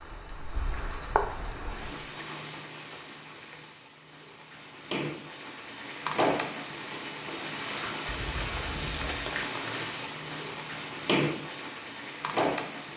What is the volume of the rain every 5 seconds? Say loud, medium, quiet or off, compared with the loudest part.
medium, loud, loud.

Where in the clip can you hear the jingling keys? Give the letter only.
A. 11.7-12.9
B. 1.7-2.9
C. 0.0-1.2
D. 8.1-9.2
D.